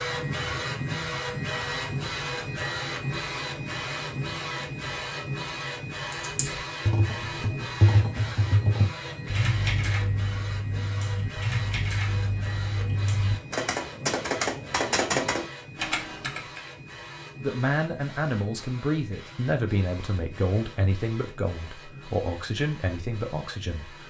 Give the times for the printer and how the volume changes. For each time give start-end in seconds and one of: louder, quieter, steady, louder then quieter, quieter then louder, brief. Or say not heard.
0.0-24.0 quieter.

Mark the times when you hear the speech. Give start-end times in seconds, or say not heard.
17.4-24.0.